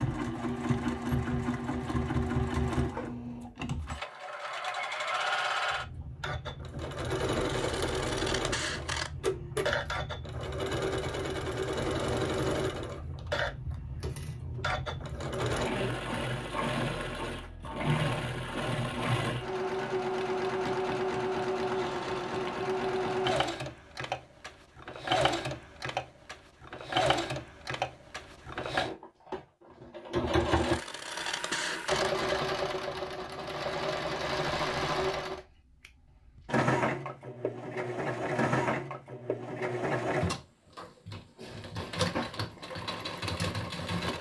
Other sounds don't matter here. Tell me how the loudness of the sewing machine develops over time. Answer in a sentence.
The loudness of the sewing machine stays about the same.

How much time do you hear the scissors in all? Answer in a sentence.
You can hear the scissors for 4 seconds altogether.